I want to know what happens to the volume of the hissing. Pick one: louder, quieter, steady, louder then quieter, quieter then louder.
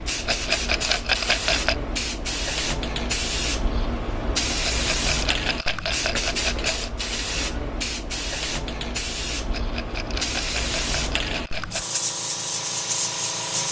steady.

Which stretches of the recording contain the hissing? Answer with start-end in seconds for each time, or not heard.
0.0-13.6.